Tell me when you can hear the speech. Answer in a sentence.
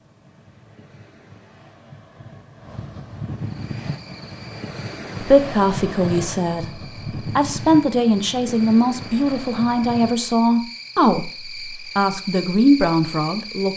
You can hear the speech from 5.2 to 13.7 s.